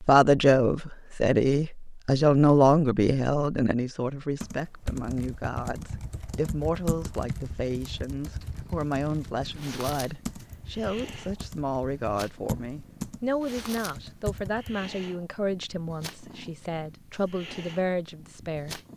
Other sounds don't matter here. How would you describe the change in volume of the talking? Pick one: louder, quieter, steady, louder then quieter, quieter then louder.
quieter.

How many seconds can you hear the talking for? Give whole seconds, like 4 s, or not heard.
19 s.